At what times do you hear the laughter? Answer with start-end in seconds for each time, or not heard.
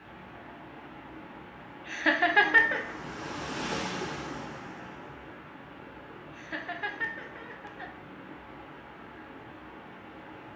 1.9-3.0, 6.3-7.9.